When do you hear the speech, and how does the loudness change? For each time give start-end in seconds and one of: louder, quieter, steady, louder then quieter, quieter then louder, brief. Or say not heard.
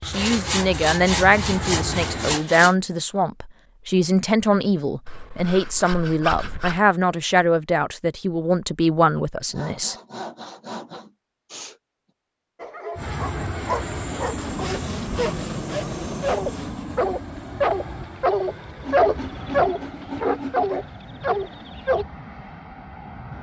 0.1-9.9 steady.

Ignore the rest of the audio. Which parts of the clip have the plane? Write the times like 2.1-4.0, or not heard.
0.0-2.4, 12.9-23.3.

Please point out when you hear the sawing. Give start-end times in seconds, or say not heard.
0.1-2.8, 5.0-6.8, 9.5-11.8, 14.3-16.9, 18.8-20.9.